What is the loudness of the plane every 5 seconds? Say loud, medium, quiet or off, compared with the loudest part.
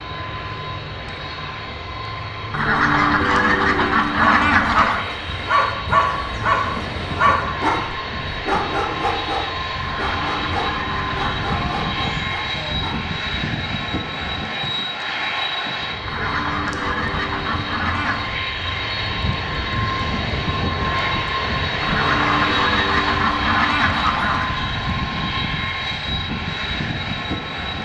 medium, medium, loud, loud, loud, loud.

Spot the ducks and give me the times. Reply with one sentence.
The ducks can be heard from 2.5 to 5.0 s, from 9.8 to 11.3 s, from 16.1 to 18.4 s and from 21.8 to 24.5 s.